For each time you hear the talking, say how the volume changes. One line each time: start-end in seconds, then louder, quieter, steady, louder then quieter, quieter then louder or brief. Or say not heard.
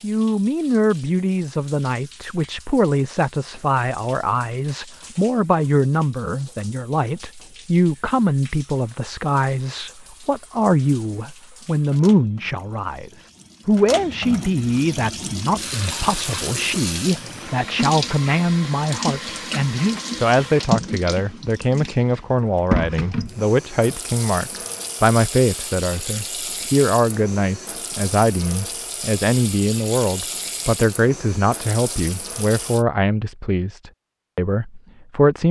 0.0-35.4 steady.